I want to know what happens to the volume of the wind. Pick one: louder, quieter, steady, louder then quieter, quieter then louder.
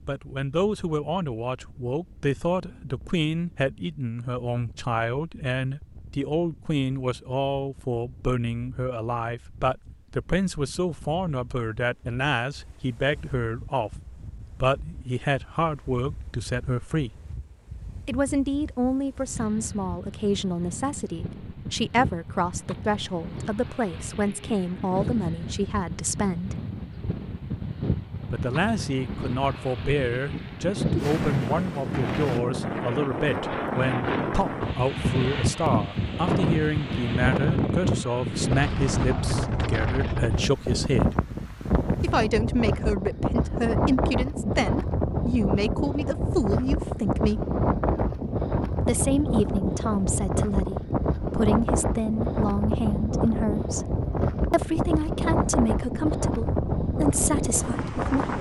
louder.